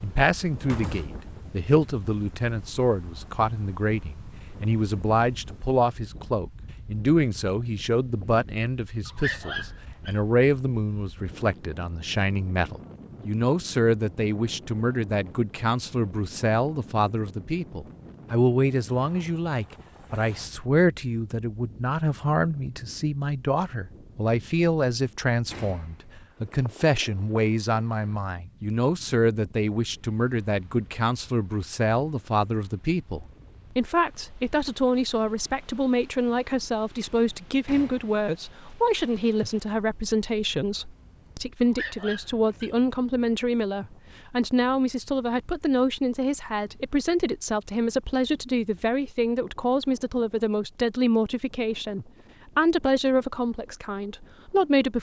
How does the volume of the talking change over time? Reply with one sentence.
The loudness of the talking stays about the same.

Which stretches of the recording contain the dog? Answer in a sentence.
The dog can be heard from 9.1 to 10.2 s and from 41.6 to 42.8 s.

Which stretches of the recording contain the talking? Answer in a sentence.
The talking can be heard from 0.0 to 54.9 s.